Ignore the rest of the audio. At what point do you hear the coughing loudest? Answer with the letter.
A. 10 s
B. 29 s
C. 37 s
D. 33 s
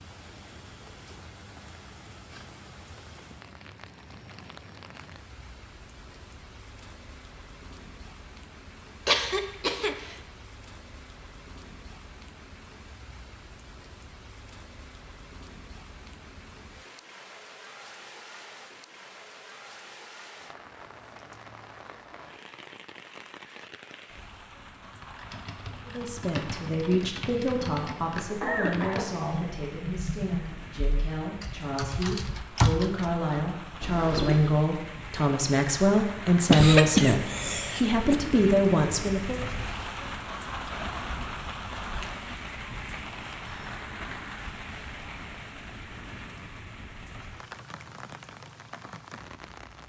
C.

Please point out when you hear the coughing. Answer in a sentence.
The coughing can be heard from 9.1 to 10.2 s, from 28.4 to 29.1 s and from 36.5 to 38.1 s.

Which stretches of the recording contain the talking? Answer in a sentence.
You can hear the talking from 25.9 to 39.5 s.